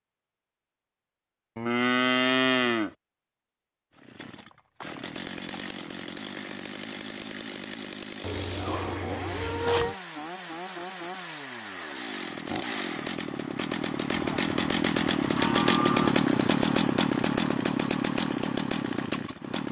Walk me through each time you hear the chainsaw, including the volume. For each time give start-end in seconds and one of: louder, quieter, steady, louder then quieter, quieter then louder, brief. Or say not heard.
4.0-19.6 louder.